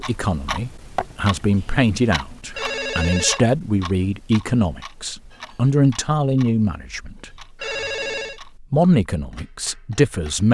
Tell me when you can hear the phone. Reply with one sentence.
The phone can be heard from 2.5 to 3.4 s and from 7.5 to 8.4 s.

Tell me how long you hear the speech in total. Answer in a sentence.
The speech can be heard for 9 seconds in total.